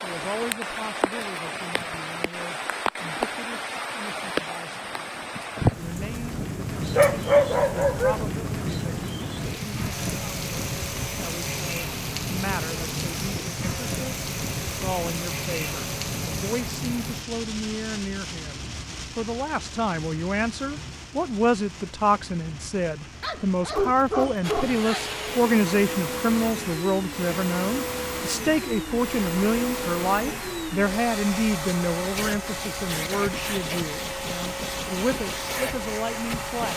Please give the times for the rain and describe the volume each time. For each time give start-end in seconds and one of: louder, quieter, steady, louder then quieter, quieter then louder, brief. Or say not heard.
0.0-36.7 quieter.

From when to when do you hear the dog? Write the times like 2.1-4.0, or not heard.
7.0-8.2, 23.2-25.1.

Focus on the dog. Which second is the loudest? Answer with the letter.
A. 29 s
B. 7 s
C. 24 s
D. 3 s
B.